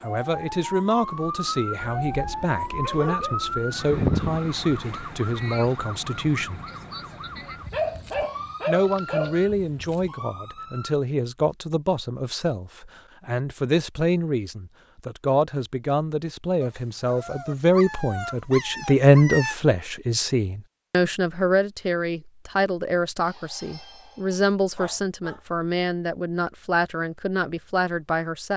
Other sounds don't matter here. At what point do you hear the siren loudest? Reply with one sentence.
The volume of the siren peaks at 4 seconds.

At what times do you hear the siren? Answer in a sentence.
The siren can be heard from 0.0 to 10.9 s.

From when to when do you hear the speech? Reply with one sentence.
The speech can be heard from 0.0 to 6.6 s and from 8.7 to 28.5 s.